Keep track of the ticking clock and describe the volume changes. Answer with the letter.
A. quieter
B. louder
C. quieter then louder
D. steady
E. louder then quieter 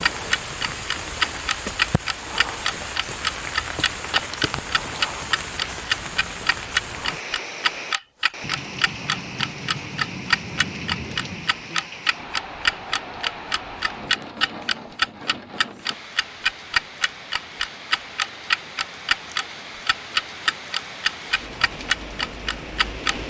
D.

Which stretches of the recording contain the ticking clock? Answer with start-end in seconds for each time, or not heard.
0.0-23.1.